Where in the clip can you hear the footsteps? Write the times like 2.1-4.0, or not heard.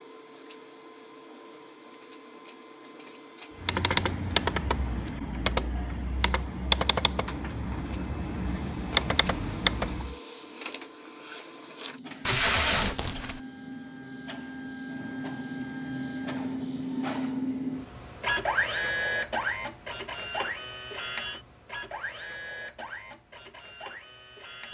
not heard.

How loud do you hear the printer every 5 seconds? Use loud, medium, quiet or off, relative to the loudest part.
quiet, quiet, medium, loud, medium.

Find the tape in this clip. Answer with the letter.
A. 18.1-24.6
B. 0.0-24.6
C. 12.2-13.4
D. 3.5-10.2
C.